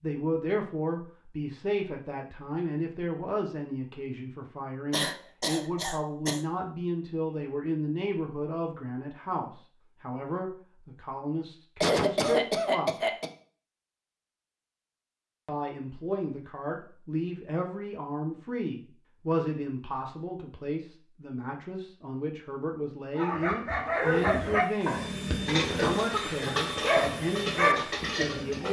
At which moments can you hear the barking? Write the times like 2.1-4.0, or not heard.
23.1-28.6.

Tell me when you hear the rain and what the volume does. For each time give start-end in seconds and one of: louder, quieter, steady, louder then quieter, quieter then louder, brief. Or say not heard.
not heard.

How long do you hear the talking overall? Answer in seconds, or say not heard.
26 s.